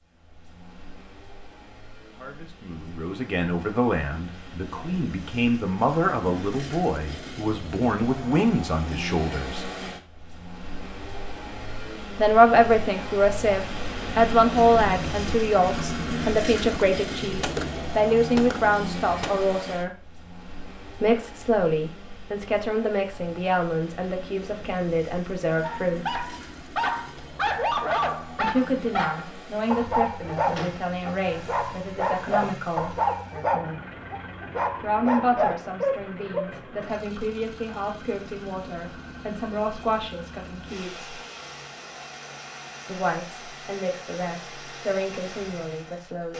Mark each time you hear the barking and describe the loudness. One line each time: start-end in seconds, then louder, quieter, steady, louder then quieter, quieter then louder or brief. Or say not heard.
25.6-36.5 steady.